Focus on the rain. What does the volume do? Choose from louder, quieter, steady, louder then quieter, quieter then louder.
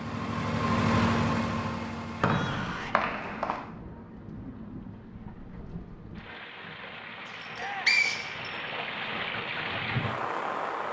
louder.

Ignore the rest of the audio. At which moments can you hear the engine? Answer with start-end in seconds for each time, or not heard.
0.0-2.6.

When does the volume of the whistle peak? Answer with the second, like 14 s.
8 s.